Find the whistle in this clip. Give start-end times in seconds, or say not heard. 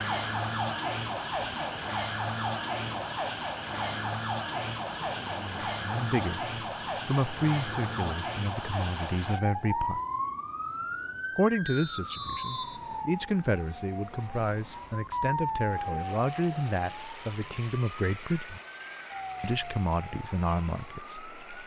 11.7-13.1.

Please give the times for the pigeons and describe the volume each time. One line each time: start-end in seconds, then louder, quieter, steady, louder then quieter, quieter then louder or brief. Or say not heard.
not heard.